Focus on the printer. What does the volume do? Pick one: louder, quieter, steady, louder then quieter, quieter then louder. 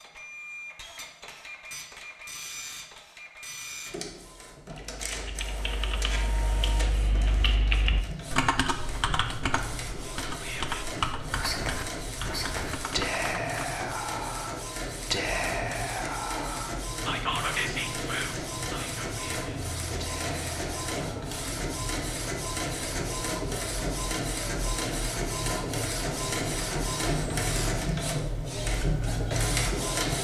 louder.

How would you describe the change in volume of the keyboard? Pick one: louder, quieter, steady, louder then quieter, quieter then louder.
louder then quieter.